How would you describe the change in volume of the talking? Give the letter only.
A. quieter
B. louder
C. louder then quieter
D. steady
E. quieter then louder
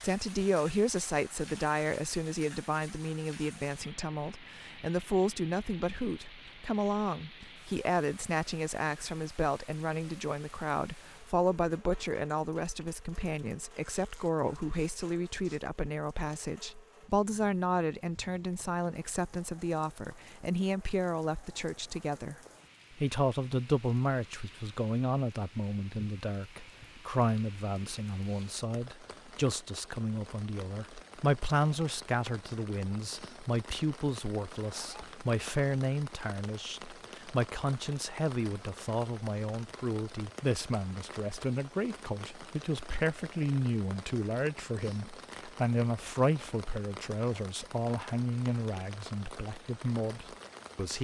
D.